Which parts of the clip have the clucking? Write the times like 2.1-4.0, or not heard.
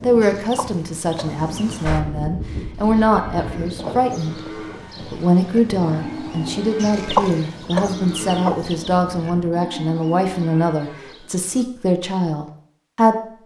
0.2-1.8, 6.8-8.9.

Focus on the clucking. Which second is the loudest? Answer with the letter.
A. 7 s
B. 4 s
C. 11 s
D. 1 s
A.